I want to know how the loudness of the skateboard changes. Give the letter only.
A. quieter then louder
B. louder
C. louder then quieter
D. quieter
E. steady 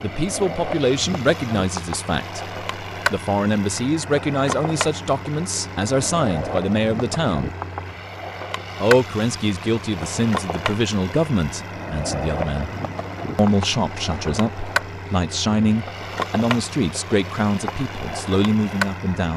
E.